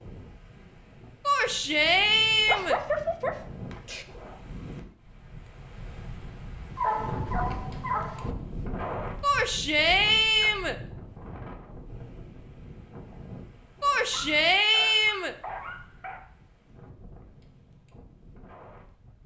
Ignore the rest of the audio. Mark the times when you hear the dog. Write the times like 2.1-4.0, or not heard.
2.5-4.0, 6.8-8.3, 14.1-16.2.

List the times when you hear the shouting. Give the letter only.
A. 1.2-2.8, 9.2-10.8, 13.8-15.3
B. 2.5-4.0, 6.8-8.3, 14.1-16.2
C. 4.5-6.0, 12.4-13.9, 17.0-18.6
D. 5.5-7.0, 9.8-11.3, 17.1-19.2
A.